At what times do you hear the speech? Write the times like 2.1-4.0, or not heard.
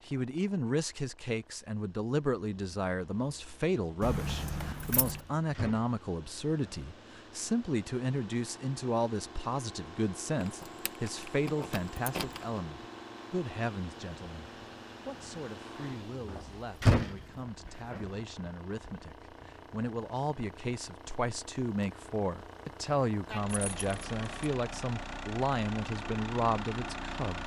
0.1-27.4.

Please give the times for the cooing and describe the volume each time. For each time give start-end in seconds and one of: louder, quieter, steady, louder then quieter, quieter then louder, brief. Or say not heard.
not heard.